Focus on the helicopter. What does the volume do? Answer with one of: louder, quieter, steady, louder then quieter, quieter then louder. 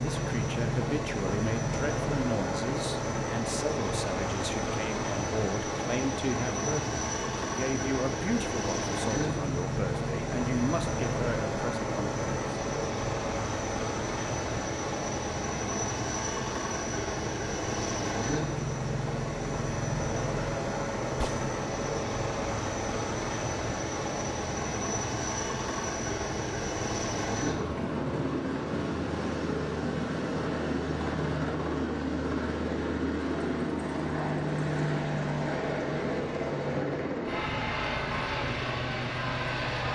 steady.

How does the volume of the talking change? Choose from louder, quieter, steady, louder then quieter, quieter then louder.
steady.